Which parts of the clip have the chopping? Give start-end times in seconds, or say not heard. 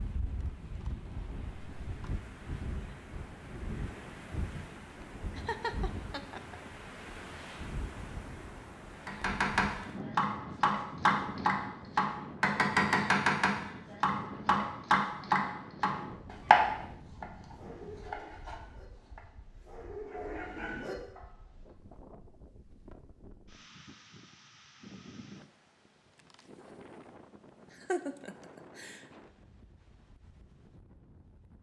9.1-19.2.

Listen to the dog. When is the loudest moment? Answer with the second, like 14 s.
21 s.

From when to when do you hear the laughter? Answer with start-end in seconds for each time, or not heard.
5.3-6.5, 27.7-29.1.